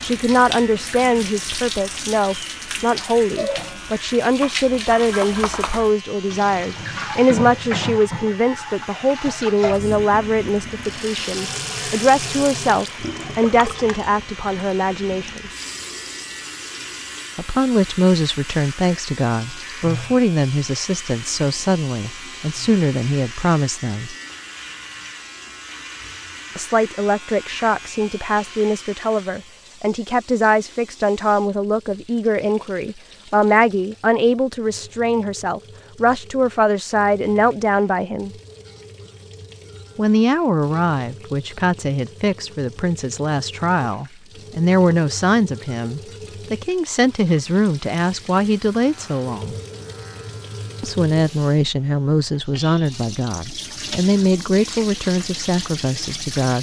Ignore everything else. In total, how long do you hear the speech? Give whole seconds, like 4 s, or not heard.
49 s.